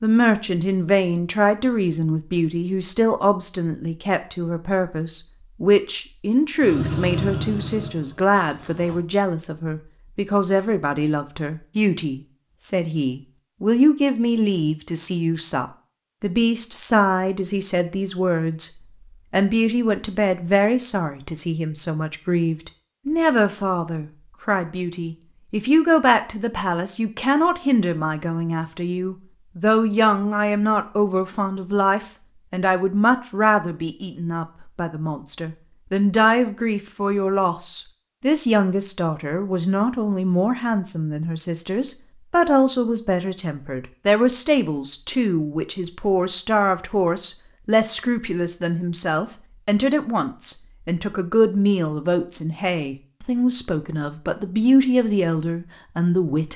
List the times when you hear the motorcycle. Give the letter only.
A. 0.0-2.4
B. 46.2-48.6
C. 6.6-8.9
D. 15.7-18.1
C.